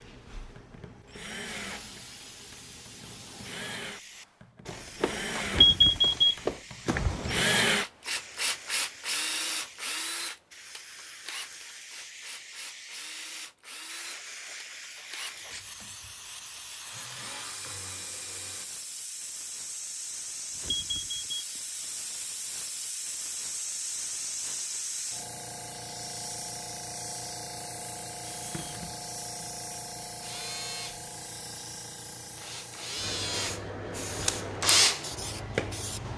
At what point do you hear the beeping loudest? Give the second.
6 s.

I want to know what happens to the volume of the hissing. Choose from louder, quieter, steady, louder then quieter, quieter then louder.
louder.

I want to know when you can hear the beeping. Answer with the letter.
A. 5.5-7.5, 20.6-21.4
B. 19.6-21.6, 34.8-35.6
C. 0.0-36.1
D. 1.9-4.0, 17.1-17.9
A.